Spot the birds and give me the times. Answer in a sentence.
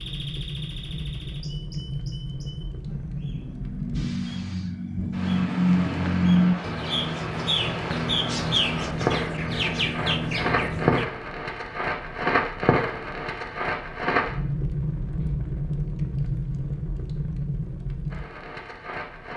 The birds can be heard from 0.0 to 11.1 s.